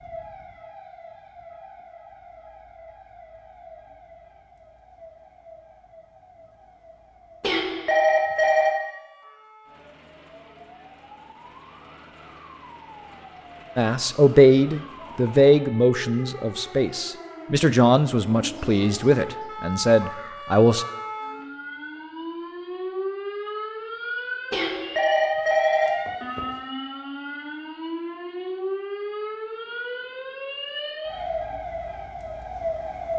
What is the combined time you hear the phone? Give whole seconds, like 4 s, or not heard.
3 s.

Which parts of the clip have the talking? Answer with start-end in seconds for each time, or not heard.
13.8-20.9.